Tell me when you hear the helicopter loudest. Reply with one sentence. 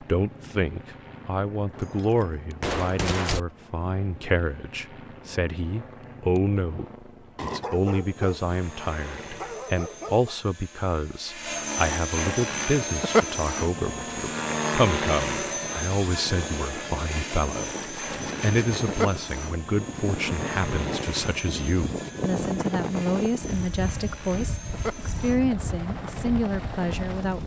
The loudest moment of the helicopter is at 13 seconds.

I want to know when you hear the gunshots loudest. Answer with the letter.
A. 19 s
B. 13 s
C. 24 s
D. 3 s
D.